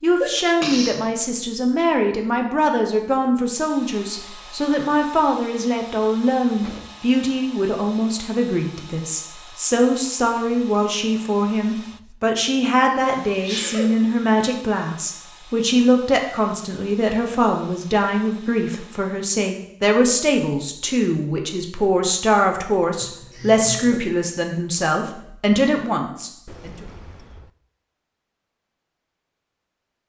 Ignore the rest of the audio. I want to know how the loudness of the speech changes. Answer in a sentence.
The loudness of the speech stays about the same.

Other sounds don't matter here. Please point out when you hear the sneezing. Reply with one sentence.
You can hear the sneezing from 0.2 to 1.0 s, from 12.8 to 13.9 s and from 23.0 to 24.0 s.